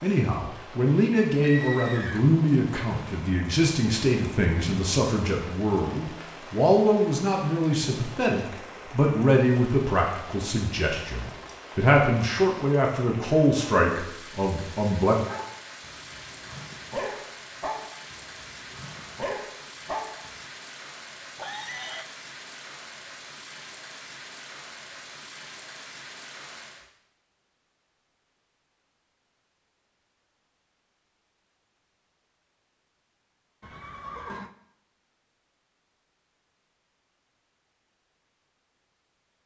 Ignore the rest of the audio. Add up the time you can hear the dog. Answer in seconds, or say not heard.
5 s.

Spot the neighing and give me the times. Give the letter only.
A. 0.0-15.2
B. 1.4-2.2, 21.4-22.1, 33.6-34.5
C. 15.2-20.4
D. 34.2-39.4
B.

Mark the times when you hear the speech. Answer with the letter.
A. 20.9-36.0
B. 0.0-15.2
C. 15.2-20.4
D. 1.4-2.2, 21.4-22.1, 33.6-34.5
B.